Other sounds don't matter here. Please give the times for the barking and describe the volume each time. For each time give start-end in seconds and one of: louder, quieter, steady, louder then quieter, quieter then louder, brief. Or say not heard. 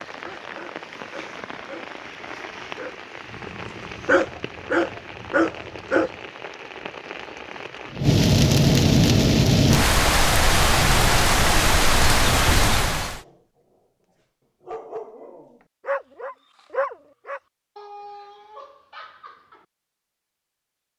0.2-6.1 louder
13.1-13.8 brief
14.6-19.6 louder then quieter.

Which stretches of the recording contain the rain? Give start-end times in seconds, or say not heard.
0.0-13.2.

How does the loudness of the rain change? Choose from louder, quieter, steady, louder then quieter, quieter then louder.
louder.